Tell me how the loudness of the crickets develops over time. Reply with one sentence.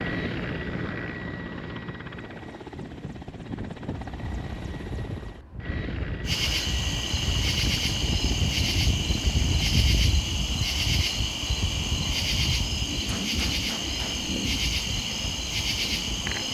The loudness of the crickets stays about the same.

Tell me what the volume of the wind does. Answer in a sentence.
The volume of the wind goes up, then down.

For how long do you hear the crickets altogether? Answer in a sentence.
The crickets can be heard for 10 seconds in total.